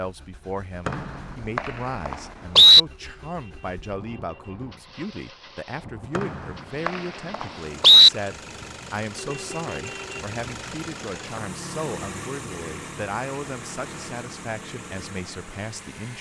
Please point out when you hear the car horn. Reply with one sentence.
You can hear the car horn from 2.9 to 4.6 s and from 9.2 to 10.2 s.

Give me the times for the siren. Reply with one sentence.
You can't hear the siren here.